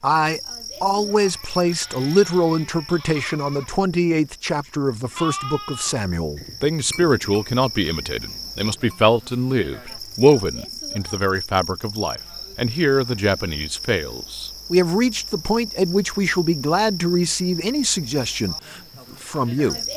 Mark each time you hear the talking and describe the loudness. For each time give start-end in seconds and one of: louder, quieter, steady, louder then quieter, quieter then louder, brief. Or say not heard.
0.0-19.8 steady.